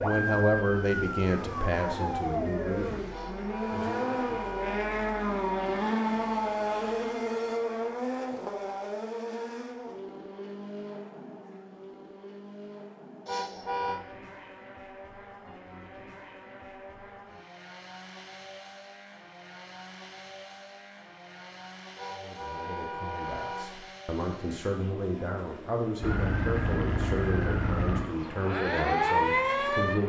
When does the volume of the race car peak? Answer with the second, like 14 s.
6 s.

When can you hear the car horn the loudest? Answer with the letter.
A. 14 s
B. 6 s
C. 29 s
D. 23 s
A.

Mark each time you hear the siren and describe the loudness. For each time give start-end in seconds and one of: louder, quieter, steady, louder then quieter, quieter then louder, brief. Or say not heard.
0.0-2.9 brief
26.0-30.0 louder.